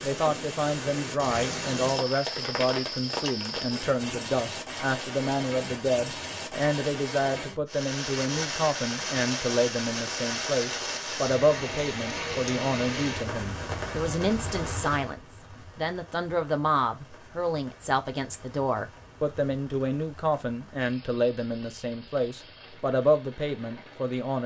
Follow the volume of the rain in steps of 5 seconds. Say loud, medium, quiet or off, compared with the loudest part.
loud, loud, loud, quiet, quiet.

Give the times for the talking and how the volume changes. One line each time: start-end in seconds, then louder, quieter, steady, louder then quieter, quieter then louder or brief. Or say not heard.
0.0-24.4 steady.